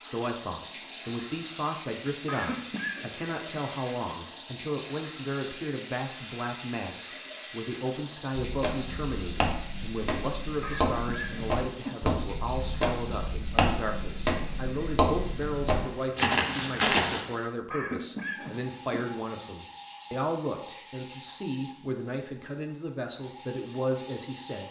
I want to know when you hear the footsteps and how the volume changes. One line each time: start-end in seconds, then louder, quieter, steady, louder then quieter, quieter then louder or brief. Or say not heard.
8.3-17.4 louder.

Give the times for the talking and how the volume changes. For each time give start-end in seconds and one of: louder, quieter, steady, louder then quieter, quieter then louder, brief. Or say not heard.
0.0-24.6 steady.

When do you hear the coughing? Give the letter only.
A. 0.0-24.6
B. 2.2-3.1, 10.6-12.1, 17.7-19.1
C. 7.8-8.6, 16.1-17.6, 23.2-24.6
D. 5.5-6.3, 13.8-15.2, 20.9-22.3
B.